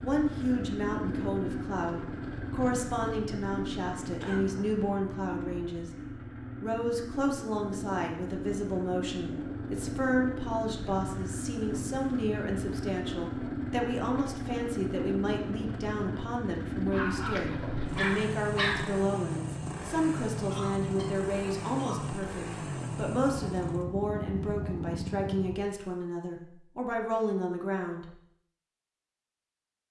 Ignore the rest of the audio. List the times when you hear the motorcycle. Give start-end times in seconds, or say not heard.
0.0-25.6.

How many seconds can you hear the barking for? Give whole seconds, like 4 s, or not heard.
2 s.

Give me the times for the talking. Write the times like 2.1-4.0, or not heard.
0.0-5.9, 6.6-28.1.